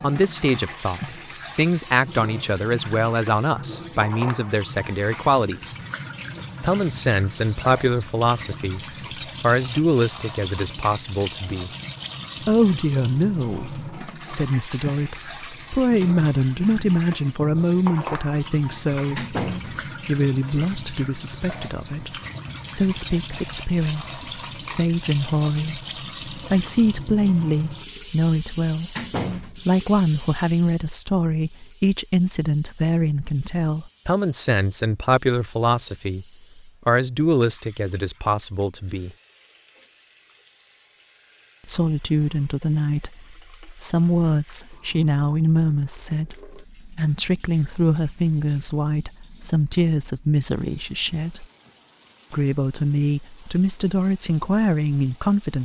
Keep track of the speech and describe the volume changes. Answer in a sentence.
The volume of the speech stays about the same.